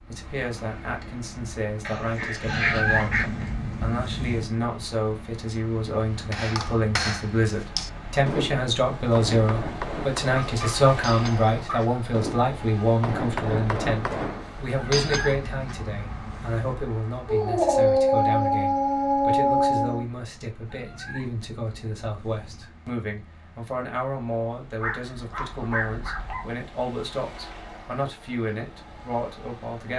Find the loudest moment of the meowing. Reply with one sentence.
The loudest moment of the meowing is at 3 seconds.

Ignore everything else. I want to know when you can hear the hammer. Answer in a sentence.
The hammer can be heard from 6.3 to 15.8 s.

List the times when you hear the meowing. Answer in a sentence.
The meowing can be heard from 2.5 to 4.5 s, from 14.8 to 16.8 s and from 20.6 to 22.6 s.